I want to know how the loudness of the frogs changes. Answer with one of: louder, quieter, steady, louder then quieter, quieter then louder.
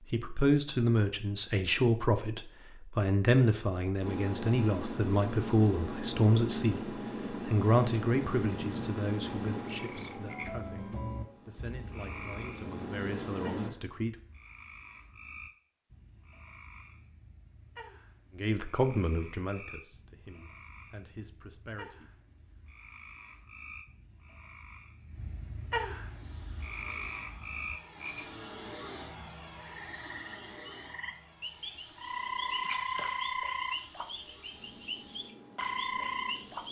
quieter then louder.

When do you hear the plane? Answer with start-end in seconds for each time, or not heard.
4.0-13.7, 26.1-36.6.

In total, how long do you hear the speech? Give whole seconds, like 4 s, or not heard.
18 s.